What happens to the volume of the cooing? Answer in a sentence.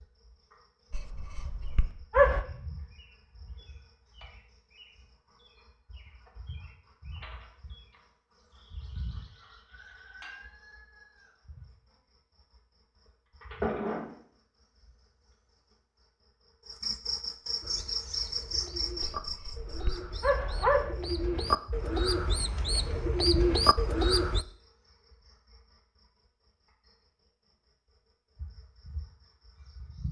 The volume of the cooing goes up.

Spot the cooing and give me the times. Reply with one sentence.
You can hear the cooing from 17.6 to 24.4 s.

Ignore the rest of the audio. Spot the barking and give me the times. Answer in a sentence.
The barking can be heard from 0.9 to 2.5 s and from 19.0 to 20.9 s.